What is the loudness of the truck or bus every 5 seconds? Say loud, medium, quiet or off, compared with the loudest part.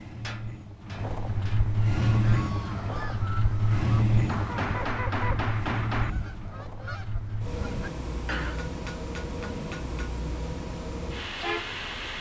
loud, medium, medium.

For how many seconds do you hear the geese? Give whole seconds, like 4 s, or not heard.
7 s.